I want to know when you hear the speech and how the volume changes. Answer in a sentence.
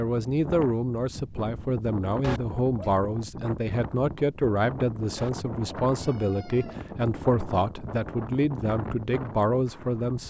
The speech can be heard from 0.0 to 10.2 s, at a steady volume.